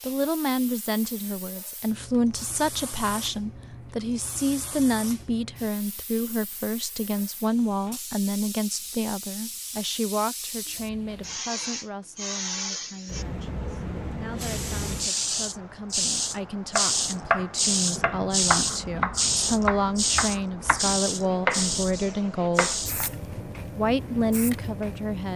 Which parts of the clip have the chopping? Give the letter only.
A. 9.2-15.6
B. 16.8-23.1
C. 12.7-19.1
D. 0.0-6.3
B.